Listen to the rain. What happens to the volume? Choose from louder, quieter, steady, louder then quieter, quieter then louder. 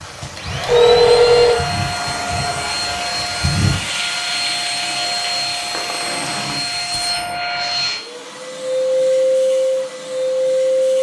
louder then quieter.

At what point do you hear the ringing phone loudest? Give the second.
1 s.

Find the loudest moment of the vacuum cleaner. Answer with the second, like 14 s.
9 s.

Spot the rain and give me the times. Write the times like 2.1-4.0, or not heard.
0.0-6.7.